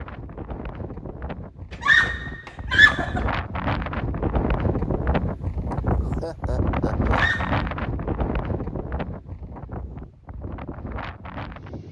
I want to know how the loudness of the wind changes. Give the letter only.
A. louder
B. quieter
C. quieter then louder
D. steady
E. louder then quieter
E.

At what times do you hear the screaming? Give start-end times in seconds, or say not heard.
1.8-3.2, 7.0-7.7.